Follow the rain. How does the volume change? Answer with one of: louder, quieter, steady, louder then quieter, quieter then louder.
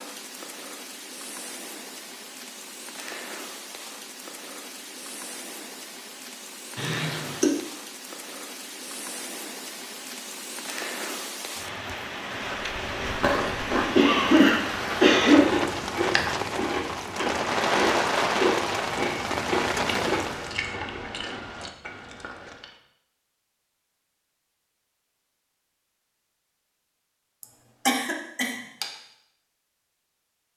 louder.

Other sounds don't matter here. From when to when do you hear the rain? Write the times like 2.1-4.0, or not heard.
0.0-20.6.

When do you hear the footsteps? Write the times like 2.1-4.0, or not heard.
not heard.